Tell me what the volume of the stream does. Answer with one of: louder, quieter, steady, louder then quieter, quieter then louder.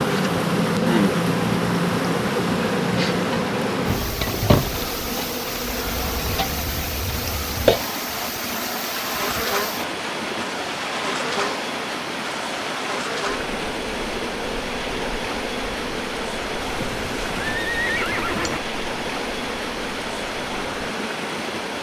steady.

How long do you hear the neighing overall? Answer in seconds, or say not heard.
2 s.